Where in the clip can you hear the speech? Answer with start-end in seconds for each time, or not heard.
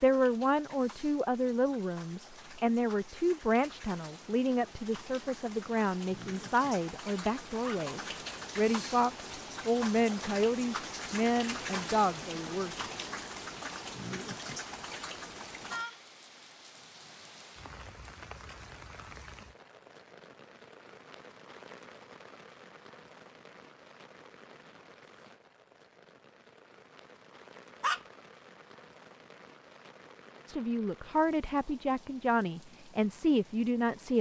0.0-12.8, 30.4-34.1.